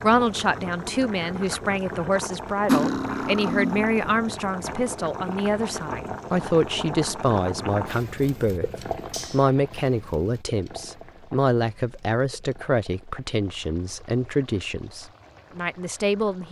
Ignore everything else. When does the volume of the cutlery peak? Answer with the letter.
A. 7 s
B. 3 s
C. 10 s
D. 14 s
B.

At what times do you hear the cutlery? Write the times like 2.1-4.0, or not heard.
2.6-4.0, 9.1-9.5.